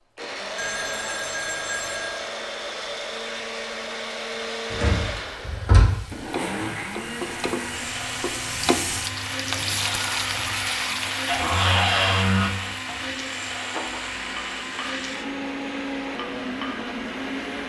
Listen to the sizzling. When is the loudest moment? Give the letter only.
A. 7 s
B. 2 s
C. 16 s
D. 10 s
D.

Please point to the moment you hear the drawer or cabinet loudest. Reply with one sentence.
The loudest moment of the drawer or cabinet is at 12 seconds.